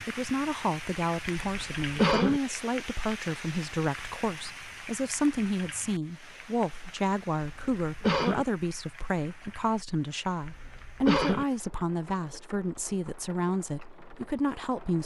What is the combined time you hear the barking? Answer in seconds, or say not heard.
not heard.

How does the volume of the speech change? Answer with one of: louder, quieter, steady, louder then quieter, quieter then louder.
steady.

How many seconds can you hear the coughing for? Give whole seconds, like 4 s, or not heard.
3 s.